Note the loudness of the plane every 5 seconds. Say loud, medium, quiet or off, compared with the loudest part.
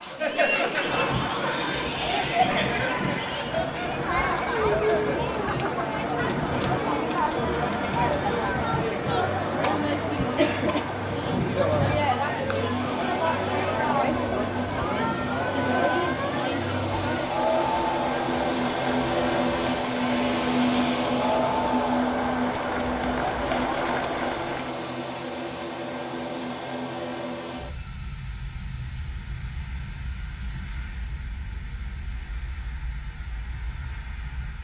medium, medium, medium, loud, loud, medium, quiet.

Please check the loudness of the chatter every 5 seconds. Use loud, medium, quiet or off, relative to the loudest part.
loud, loud, loud, loud, loud, off, off.